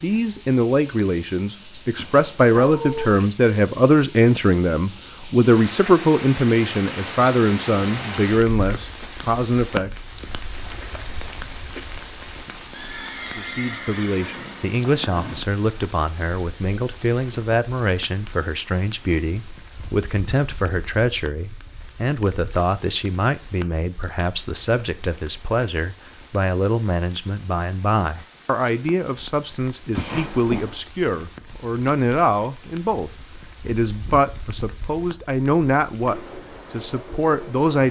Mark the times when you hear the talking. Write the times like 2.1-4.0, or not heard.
0.0-9.9, 13.3-37.8.